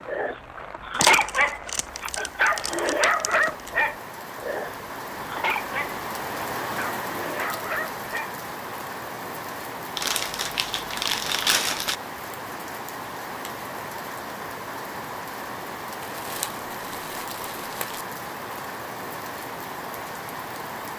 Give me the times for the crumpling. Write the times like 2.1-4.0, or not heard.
0.9-3.7, 9.9-11.9, 16.0-18.1.